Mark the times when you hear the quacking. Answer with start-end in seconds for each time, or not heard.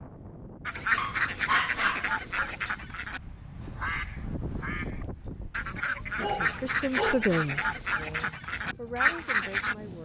0.7-9.8.